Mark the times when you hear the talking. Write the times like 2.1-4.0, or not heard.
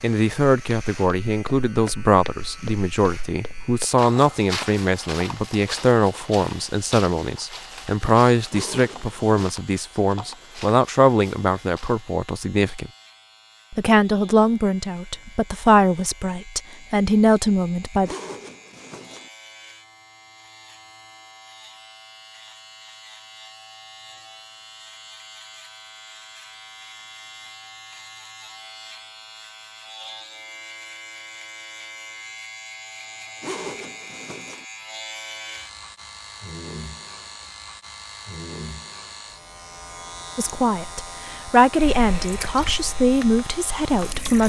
0.0-12.9, 13.7-18.1, 40.4-44.4.